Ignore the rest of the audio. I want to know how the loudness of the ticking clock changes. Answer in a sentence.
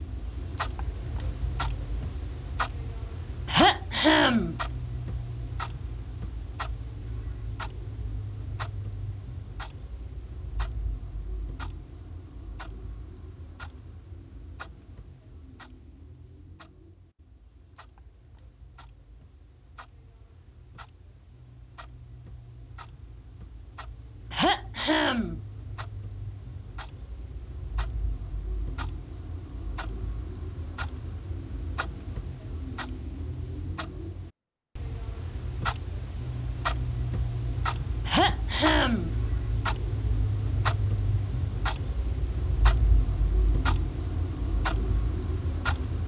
The loudness of the ticking clock goes down, then up.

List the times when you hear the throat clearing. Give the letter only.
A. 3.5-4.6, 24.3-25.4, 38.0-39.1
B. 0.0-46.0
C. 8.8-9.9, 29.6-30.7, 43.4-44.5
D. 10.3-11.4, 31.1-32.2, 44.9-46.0
A.